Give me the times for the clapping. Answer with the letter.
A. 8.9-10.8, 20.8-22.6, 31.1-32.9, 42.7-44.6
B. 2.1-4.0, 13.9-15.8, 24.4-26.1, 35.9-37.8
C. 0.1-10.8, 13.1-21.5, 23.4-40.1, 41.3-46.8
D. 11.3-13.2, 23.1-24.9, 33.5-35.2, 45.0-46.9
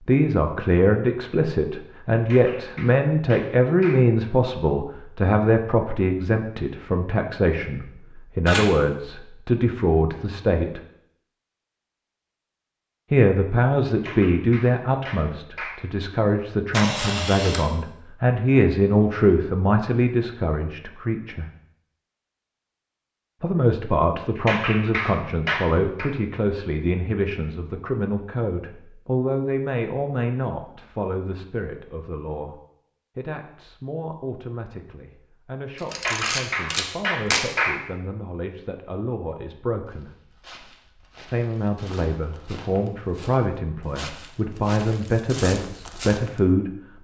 B.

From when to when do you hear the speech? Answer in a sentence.
The speech can be heard from 0.1 to 10.8 s, from 13.1 to 21.5 s, from 23.4 to 40.1 s and from 41.3 to 46.8 s.